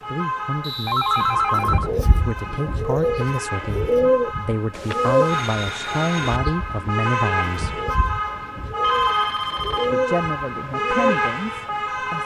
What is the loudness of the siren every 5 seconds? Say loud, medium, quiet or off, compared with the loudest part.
medium, loud, loud.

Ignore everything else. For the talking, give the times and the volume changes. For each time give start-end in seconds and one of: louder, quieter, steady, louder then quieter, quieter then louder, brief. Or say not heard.
0.1-7.8 louder
9.9-12.2 brief.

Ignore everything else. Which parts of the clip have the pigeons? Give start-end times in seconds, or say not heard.
1.4-11.6.